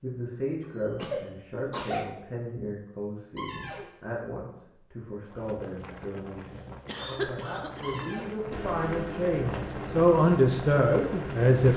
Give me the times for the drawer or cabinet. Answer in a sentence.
The drawer or cabinet can be heard from 3.4 to 3.9 s and from 7.8 to 8.3 s.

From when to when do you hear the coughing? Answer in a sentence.
You can hear the coughing from 0.9 to 2.1 s and from 6.8 to 8.8 s.